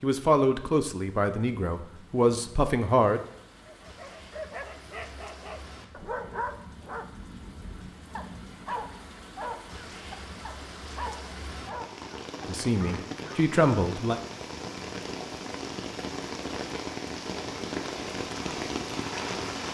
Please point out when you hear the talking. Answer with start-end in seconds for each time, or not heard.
0.0-3.2, 12.4-14.2.